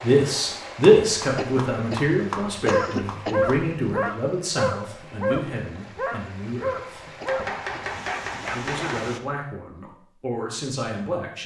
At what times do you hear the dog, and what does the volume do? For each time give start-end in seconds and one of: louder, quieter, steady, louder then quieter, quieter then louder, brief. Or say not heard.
2.6-8.9 quieter.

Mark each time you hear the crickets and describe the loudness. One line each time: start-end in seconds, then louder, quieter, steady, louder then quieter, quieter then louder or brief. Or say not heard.
not heard.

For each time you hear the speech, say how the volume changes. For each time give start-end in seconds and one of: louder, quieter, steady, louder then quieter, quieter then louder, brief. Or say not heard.
0.0-7.0 quieter
8.5-11.4 brief.